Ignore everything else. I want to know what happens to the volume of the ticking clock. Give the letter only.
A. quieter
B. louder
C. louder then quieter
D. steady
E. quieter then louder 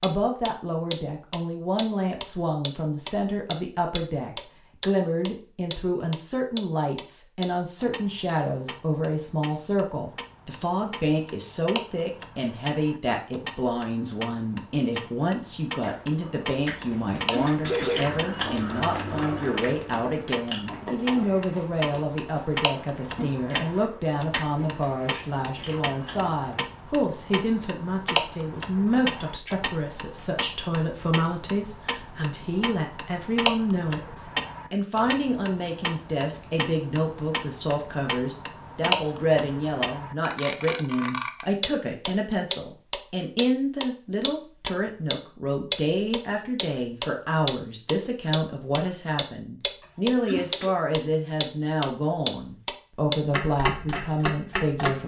B.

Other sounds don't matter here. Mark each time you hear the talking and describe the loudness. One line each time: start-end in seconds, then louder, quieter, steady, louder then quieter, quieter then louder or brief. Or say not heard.
0.0-55.0 steady.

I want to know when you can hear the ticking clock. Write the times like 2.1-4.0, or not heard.
0.0-55.0.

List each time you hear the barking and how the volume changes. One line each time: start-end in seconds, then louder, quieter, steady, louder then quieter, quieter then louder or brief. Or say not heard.
not heard.